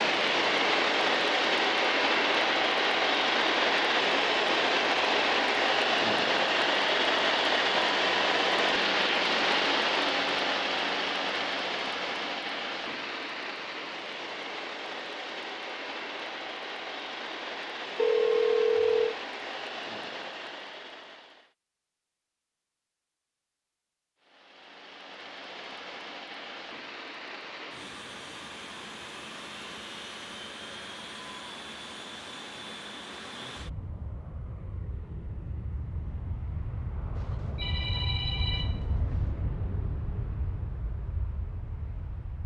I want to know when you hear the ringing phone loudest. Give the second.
18 s.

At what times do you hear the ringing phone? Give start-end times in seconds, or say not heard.
17.9-19.1, 37.1-39.1.